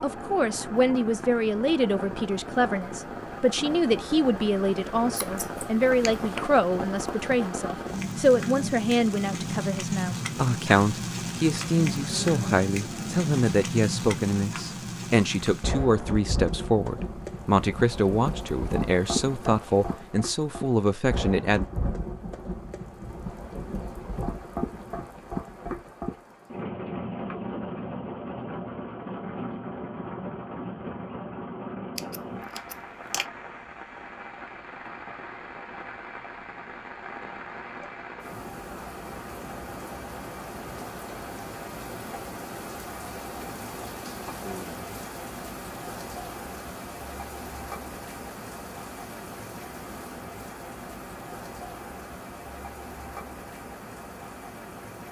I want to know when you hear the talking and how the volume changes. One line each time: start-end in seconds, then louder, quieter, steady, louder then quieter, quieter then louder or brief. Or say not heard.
0.0-21.6 steady.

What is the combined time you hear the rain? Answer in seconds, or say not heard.
55 s.